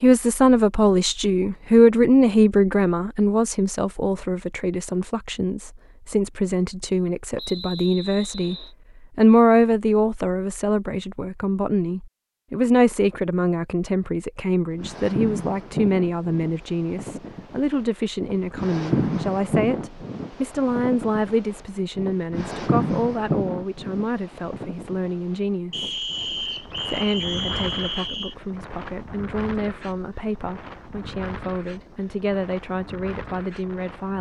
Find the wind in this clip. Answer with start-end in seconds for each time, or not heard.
14.8-34.1.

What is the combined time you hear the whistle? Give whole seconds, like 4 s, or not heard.
4 s.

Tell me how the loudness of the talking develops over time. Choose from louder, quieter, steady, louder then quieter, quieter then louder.
quieter.